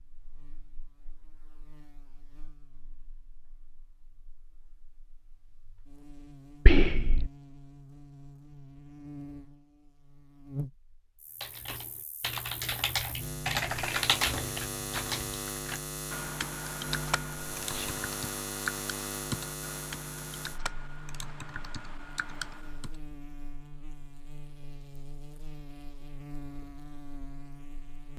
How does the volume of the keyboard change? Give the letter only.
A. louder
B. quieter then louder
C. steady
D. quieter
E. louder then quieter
D.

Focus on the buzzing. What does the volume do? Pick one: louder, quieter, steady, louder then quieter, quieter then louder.
louder then quieter.